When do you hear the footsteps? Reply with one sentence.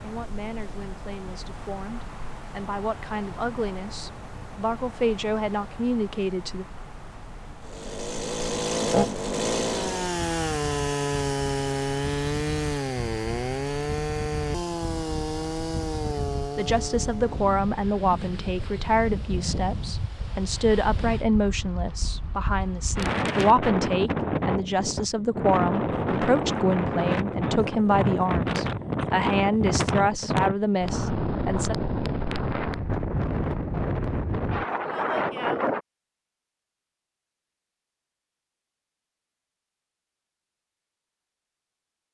The footsteps can't be heard in this clip.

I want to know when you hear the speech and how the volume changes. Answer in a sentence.
The speech can be heard from 0.0 to 6.7 s, getting louder; and from 16.6 to 31.8 s, at a steady volume.